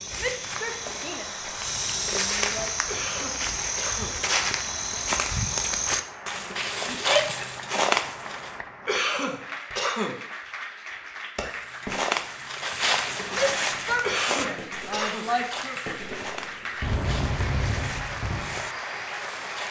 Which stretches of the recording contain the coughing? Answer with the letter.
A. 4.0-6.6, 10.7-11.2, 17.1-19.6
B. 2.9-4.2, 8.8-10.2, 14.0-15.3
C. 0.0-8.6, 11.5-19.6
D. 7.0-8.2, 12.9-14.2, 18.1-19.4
B.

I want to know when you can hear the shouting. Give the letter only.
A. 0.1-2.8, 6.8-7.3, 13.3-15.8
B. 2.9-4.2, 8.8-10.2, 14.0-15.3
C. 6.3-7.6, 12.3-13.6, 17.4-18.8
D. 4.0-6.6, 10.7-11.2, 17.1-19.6
A.